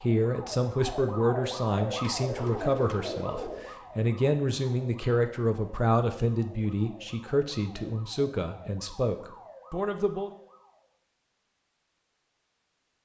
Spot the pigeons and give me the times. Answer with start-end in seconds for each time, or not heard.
2.2-3.8.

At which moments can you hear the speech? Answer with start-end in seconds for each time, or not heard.
0.0-10.3.